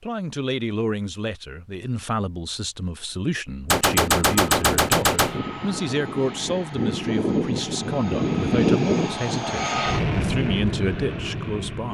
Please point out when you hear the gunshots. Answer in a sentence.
You can hear the gunshots from 3.7 to 5.4 s.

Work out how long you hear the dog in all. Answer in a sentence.
The dog can't be heard in this clip.